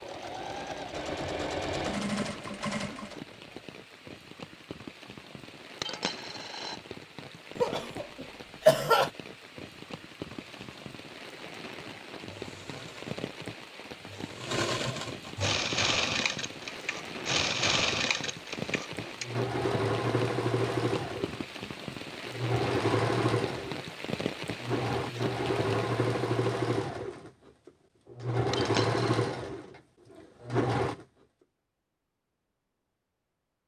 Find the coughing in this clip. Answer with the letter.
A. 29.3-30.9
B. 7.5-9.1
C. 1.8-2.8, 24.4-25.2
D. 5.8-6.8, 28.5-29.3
B.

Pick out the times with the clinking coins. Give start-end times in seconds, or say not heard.
5.8-6.8, 28.5-29.3.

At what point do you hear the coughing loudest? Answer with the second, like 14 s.
9 s.